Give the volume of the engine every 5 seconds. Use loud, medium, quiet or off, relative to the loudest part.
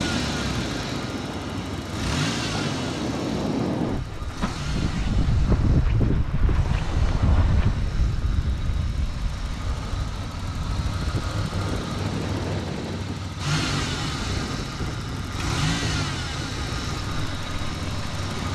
loud, medium, loud, loud.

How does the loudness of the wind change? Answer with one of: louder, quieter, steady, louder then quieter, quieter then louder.
quieter.